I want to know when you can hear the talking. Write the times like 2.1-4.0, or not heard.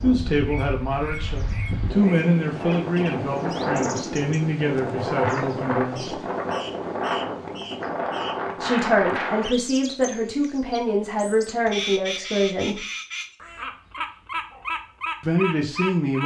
0.0-6.2, 8.6-12.8, 15.2-16.2.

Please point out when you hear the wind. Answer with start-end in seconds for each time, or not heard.
0.0-9.5.